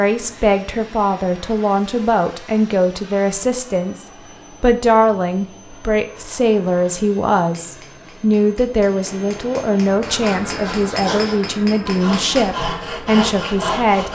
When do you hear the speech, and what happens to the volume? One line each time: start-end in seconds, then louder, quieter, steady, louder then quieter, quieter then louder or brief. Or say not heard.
0.0-14.1 steady.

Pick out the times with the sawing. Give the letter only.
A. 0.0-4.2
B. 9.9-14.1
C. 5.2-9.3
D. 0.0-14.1
B.